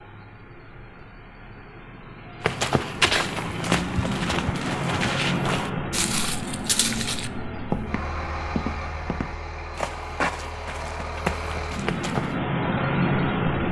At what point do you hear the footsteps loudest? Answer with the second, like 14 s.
3 s.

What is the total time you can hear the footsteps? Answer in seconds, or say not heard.
10 s.